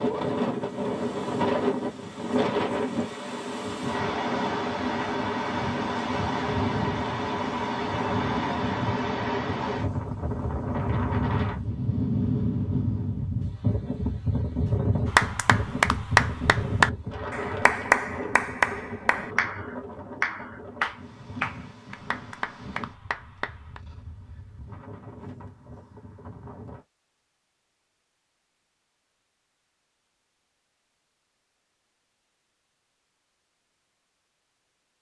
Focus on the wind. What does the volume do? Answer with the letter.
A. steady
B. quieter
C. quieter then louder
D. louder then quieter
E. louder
B.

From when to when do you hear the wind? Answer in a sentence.
You can hear the wind from 0.0 to 26.9 s.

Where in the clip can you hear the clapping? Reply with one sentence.
The clapping can be heard from 15.1 to 23.8 s.